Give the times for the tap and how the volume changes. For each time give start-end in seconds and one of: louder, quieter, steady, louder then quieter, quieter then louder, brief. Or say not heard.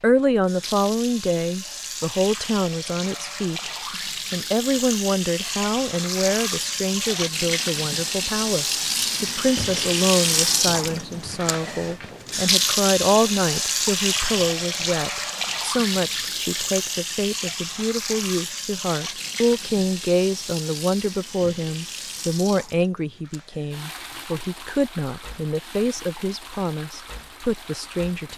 0.0-28.3 louder then quieter.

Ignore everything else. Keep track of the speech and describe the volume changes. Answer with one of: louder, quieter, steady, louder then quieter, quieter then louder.
steady.